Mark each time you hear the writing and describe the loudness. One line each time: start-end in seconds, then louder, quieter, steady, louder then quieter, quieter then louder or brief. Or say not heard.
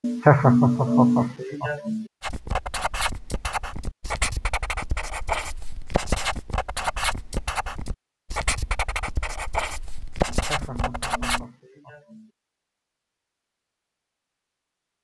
2.2-11.4 steady.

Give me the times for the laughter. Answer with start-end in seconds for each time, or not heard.
0.0-2.0, 10.3-12.3.